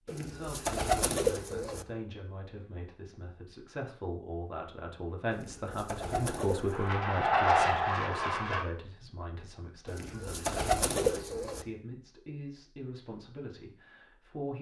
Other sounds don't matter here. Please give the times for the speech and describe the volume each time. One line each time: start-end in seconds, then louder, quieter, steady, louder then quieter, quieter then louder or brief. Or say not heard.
0.0-14.5 louder then quieter.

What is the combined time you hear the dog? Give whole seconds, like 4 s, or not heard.
not heard.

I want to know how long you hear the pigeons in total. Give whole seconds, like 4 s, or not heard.
5 s.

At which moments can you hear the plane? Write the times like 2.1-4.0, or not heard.
6.3-8.7.